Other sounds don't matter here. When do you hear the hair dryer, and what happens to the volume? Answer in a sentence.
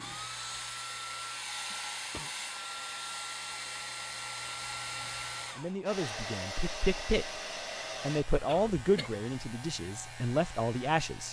The hair dryer can be heard from 0.0 to 11.2 s, getting quieter.